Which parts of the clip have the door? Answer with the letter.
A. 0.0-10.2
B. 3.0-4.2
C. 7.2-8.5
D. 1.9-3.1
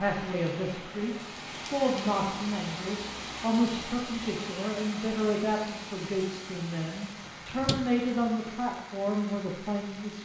C.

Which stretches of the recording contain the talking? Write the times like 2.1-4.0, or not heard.
0.0-10.2.